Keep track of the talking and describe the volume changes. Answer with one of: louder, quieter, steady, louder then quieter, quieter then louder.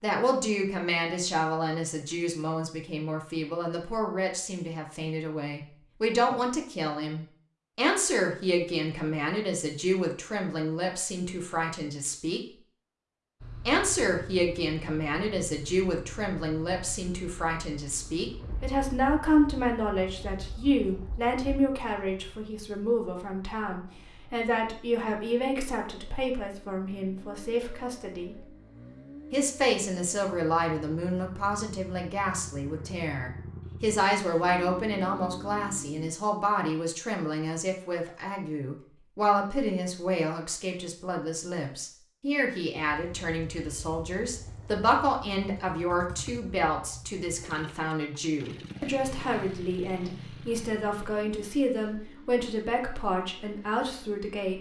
steady.